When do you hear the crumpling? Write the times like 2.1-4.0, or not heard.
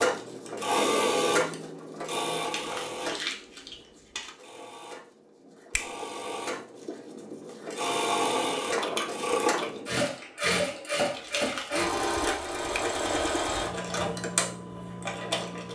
2.4-4.3, 11.1-11.7.